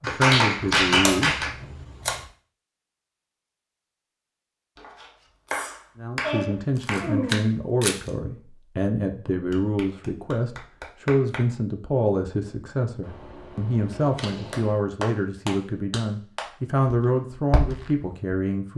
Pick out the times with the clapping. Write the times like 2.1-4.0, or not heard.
0.0-1.5, 4.8-7.5, 9.5-11.4, 14.5-16.4.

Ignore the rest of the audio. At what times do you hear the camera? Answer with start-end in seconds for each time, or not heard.
0.8-2.2, 6.8-8.1, 13.0-14.8.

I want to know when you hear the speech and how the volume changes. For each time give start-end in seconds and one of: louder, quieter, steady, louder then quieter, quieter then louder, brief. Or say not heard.
0.0-1.5 brief
6.0-18.7 steady.